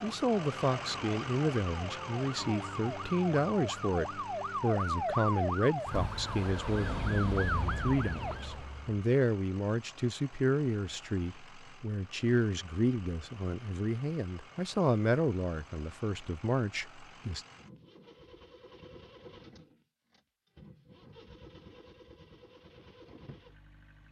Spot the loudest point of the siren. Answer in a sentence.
The volume of the siren peaks at 5 seconds.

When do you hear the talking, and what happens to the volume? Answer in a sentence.
You can hear the talking from 0.0 to 17.4 s, at a steady volume.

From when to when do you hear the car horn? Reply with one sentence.
The car horn can't be heard in this clip.